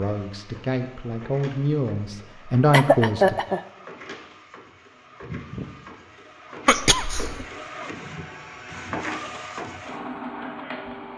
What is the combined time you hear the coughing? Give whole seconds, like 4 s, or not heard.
2 s.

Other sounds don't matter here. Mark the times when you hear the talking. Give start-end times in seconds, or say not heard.
0.0-3.4.